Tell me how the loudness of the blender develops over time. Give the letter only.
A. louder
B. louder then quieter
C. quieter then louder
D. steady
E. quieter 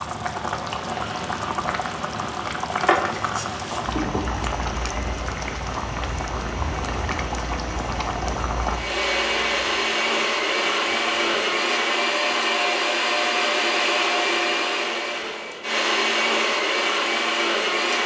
A.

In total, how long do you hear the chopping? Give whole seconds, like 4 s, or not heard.
not heard.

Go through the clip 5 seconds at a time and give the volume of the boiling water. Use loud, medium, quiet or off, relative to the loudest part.
loud, loud, quiet, quiet.